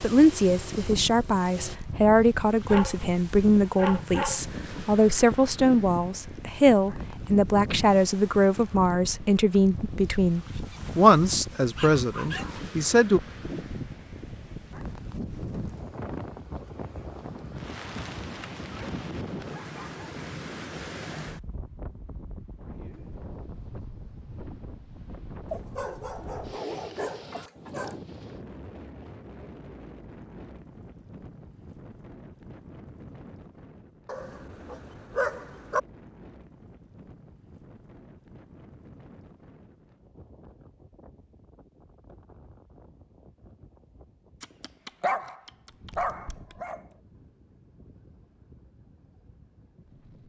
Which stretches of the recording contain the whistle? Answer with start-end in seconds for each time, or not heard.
not heard.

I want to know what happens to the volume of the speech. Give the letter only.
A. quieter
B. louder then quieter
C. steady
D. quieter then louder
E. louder
C.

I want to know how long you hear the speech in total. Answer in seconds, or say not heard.
13 s.